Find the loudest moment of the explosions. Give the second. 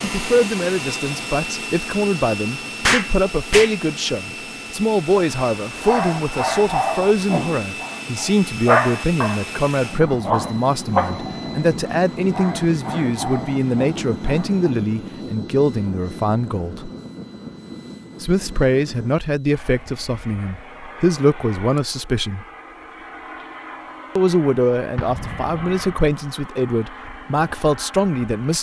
3 s.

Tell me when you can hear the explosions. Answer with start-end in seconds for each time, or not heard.
2.8-3.8, 24.9-26.0.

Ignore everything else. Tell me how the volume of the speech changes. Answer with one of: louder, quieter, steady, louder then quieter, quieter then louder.
steady.